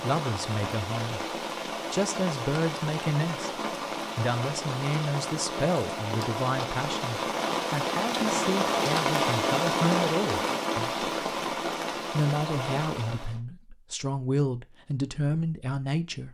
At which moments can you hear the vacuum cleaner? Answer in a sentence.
The vacuum cleaner can't be heard in this clip.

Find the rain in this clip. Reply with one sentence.
The rain can be heard from 0.0 to 13.4 s.